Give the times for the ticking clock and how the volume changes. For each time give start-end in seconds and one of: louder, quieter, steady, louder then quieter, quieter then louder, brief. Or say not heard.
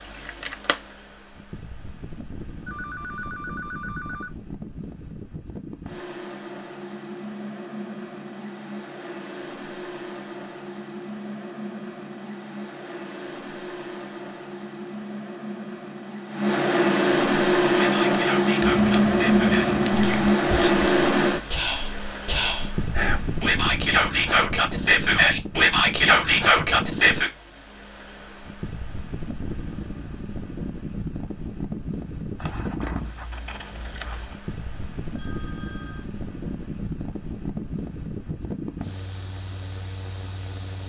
not heard.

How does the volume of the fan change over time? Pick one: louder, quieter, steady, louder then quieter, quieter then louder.
louder then quieter.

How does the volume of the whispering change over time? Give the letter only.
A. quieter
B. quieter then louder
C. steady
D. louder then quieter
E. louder
E.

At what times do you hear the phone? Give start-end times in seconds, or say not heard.
2.6-4.3, 35.1-36.1.